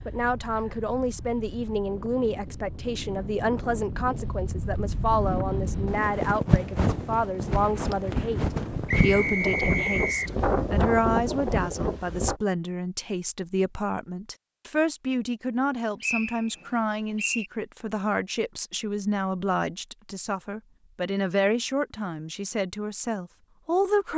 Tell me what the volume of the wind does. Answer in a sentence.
The volume of the wind goes up.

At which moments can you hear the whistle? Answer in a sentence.
You can hear the whistle from 8.8 to 10.3 s and from 16.0 to 17.5 s.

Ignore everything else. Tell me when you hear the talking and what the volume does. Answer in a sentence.
The talking can be heard from 0.1 to 8.4 s, at a steady volume; and from 9.0 to 24.1 s, at a steady volume.